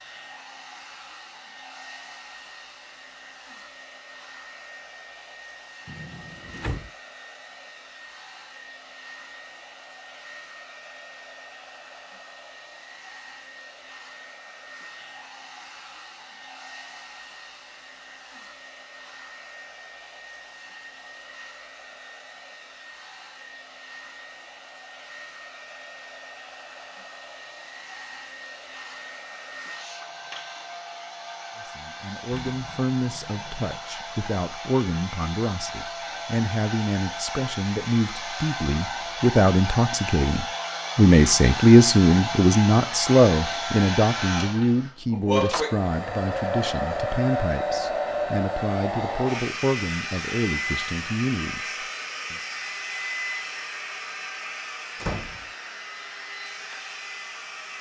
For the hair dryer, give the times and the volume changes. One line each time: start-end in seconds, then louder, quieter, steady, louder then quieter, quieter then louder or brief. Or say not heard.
0.0-57.7 louder.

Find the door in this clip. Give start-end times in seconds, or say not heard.
5.8-6.9, 32.3-33.8, 55.0-55.5.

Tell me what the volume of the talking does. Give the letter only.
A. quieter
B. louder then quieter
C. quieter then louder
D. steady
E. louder
B.